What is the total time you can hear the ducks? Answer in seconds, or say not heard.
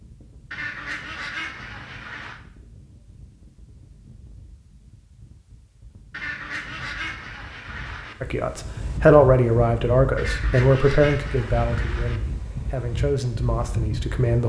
6 s.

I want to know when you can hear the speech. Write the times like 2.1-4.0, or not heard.
8.2-14.4.